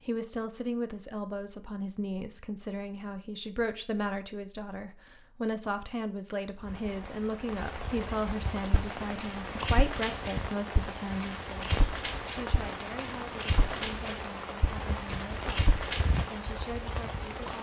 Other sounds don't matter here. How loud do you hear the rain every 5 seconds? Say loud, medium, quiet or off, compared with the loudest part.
off, loud, loud, loud.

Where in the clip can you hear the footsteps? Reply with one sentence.
The footsteps can be heard from 8.7 to 16.3 s.